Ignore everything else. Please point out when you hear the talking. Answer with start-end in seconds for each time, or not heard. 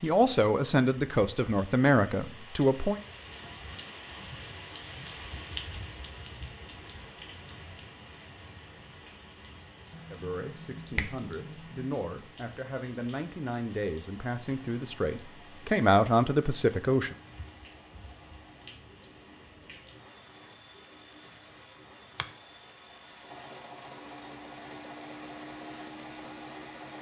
0.0-3.0, 10.1-17.1.